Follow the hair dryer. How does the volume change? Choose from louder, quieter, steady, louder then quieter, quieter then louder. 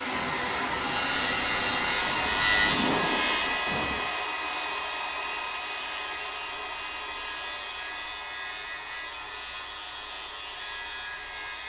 quieter.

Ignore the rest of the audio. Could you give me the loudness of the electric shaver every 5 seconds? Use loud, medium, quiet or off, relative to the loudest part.
loud, medium, medium.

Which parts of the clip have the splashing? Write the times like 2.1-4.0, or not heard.
2.0-4.0.